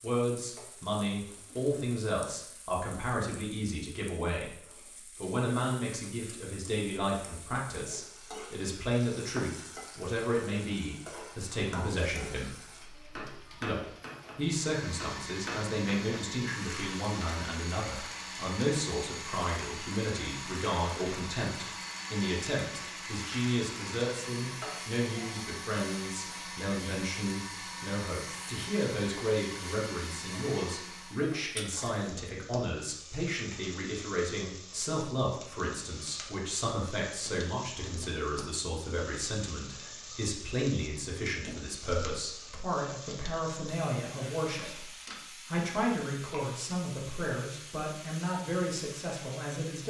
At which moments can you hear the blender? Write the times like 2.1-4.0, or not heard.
14.4-31.3.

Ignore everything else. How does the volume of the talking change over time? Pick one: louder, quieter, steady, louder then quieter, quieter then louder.
steady.